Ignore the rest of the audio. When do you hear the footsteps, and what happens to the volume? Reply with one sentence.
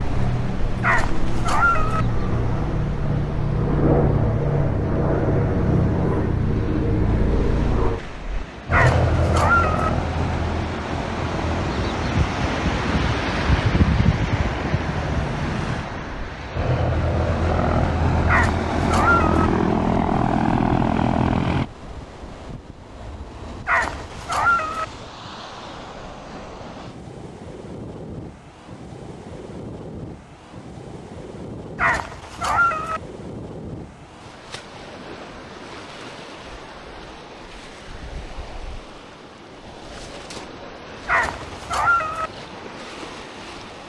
The footsteps can't be heard in this clip.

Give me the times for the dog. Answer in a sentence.
You can hear the dog from 0.8 to 2.0 s, from 8.7 to 9.9 s, from 18.2 to 19.5 s, from 23.6 to 24.9 s, from 31.8 to 33.0 s and from 41.0 to 42.3 s.